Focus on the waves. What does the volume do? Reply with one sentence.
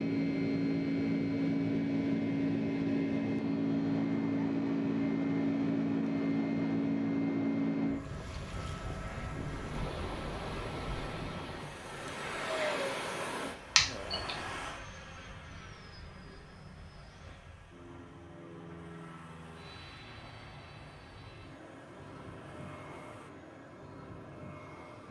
The volume of the waves goes down.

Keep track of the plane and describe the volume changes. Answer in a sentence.
The loudness of the plane goes down.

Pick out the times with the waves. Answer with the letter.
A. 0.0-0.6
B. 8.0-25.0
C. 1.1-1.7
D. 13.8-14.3
B.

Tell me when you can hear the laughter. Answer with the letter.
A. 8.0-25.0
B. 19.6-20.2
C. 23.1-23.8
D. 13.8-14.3
D.